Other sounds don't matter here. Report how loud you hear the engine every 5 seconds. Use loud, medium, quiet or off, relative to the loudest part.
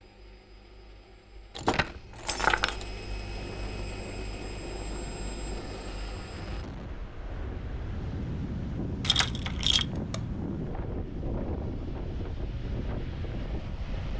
loud, loud, off.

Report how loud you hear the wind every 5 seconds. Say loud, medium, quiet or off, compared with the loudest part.
medium, loud, loud.